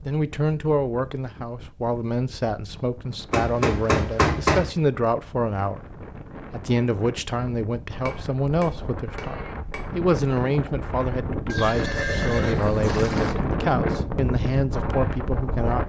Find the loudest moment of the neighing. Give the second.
12 s.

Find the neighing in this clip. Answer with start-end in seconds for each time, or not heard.
11.5-13.3.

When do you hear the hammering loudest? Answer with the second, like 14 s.
4 s.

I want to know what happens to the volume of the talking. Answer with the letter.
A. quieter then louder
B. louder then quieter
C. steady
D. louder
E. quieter
C.